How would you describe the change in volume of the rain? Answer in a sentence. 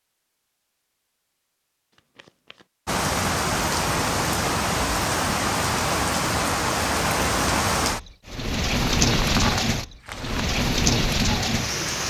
The volume of the rain stays about the same.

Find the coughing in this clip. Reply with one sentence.
The coughing can't be heard in this clip.